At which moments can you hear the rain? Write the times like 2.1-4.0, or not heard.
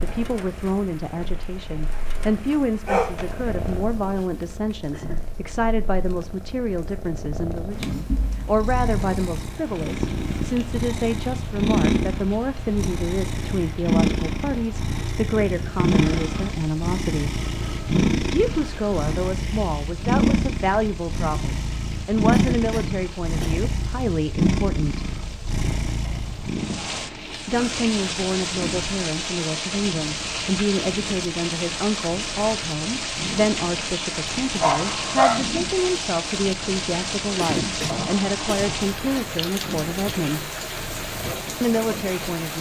0.0-42.5.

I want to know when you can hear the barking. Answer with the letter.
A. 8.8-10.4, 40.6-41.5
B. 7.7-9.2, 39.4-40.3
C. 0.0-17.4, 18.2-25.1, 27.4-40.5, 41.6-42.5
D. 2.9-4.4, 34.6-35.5
D.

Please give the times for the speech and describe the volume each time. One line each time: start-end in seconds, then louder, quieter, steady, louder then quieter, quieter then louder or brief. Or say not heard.
0.0-17.4 steady
18.2-25.1 steady
27.4-40.5 steady
41.6-42.5 brief.